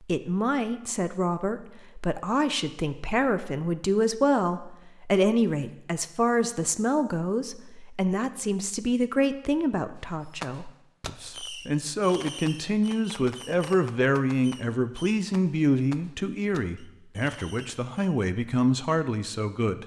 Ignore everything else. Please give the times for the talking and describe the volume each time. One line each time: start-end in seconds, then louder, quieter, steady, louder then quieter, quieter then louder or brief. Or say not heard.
0.0-19.8 steady.